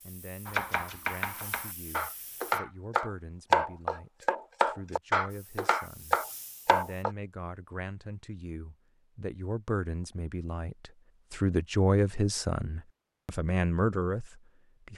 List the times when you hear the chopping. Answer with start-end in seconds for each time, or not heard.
0.5-7.1.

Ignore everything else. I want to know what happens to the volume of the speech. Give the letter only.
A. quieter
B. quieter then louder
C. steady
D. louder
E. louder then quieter
D.